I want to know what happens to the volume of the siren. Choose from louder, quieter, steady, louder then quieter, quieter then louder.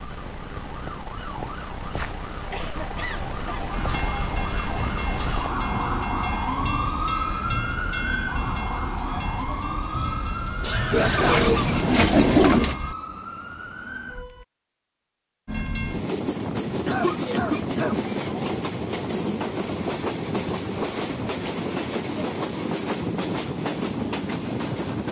louder then quieter.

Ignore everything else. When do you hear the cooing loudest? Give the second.
12 s.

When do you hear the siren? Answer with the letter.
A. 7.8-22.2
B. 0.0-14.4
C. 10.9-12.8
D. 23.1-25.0
B.